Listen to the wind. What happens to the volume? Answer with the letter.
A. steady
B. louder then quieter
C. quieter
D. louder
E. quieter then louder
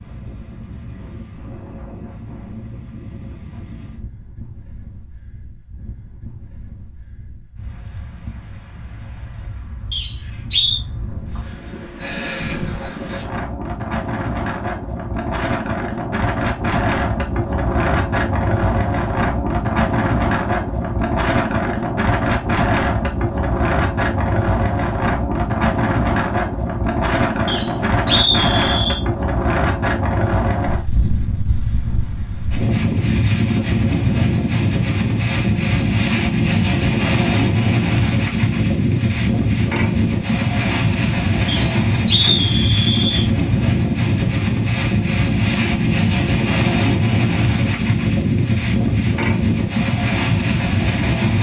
D.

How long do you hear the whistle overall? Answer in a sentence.
The whistle can be heard for 4 seconds in total.